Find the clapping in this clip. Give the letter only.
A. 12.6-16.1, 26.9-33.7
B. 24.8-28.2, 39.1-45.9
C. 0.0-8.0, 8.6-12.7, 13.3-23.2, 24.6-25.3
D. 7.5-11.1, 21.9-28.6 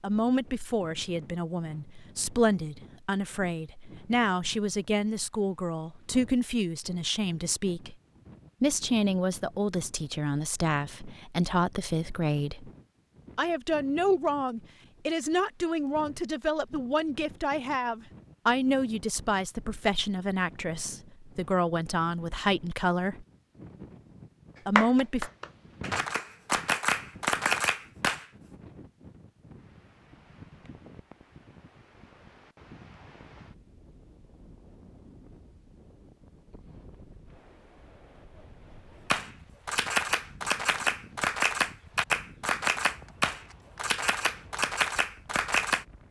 B.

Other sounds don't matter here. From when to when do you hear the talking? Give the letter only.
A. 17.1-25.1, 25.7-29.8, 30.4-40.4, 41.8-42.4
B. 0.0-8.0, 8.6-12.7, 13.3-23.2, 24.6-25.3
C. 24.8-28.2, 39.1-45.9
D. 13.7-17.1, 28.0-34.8
B.